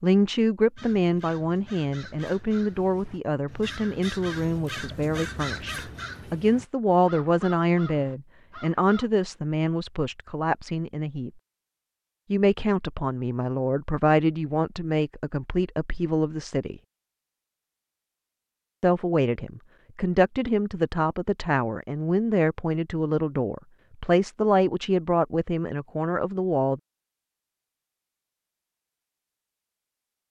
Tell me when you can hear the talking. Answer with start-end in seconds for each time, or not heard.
0.0-11.3, 12.3-16.8, 18.8-26.8.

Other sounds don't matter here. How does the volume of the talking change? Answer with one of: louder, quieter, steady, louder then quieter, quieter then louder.
steady.